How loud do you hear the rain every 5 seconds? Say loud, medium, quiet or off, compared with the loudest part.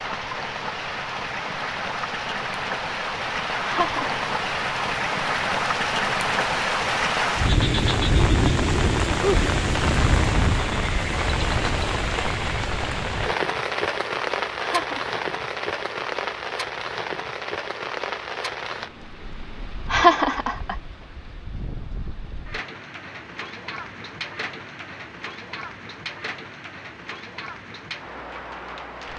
medium, loud, loud, medium, quiet, quiet.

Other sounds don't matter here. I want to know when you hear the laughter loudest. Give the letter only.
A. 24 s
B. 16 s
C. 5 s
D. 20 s
D.